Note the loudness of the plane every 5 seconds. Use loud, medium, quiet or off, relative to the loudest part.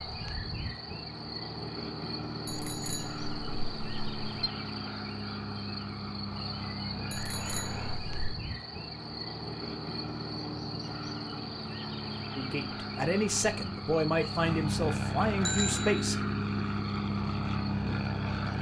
medium, medium, medium, loud.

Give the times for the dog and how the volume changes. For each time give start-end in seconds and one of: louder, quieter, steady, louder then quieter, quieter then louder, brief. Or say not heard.
not heard.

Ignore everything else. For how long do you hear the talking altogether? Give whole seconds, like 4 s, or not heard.
4 s.